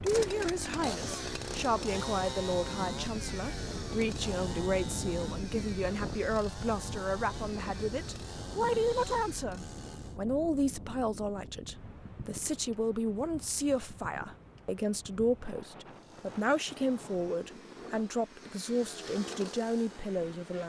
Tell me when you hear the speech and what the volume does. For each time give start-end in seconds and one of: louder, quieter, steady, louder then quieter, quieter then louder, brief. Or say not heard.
0.0-20.6 steady.